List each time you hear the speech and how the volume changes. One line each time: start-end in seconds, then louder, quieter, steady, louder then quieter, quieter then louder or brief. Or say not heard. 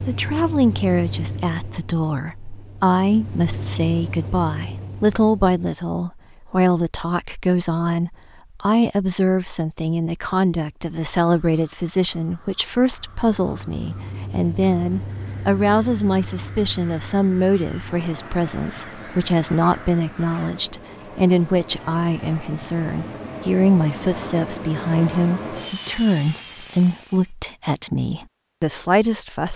0.0-29.5 steady.